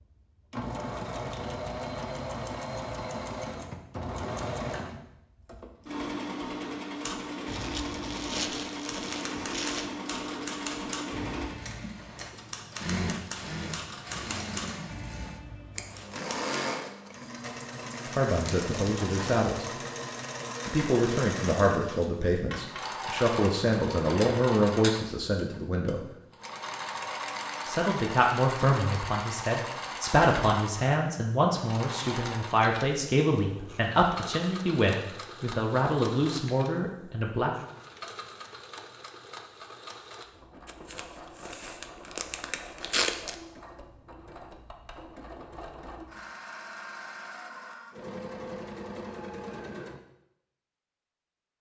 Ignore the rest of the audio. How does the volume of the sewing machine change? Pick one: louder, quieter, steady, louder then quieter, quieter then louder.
quieter.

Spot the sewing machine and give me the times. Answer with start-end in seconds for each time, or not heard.
0.0-50.0.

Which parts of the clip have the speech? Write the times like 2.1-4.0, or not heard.
18.1-19.6, 20.6-26.0, 27.6-37.5.